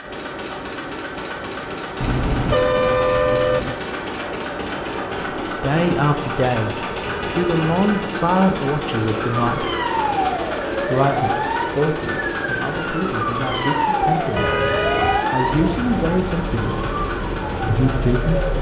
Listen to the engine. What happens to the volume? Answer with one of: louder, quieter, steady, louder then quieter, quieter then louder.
steady.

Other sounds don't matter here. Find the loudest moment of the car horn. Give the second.
3 s.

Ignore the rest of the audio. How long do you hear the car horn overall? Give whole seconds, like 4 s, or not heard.
4 s.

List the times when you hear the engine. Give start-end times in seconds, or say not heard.
0.0-18.5.